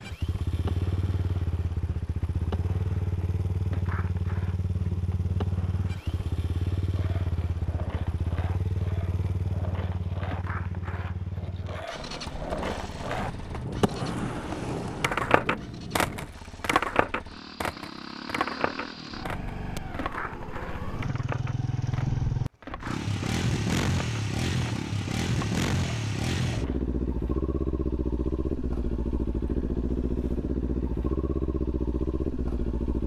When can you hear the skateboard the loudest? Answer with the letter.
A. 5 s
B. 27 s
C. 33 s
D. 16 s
D.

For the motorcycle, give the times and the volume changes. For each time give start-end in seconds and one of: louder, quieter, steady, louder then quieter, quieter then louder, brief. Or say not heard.
0.0-33.0 quieter then louder.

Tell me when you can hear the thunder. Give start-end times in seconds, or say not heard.
13.1-16.3.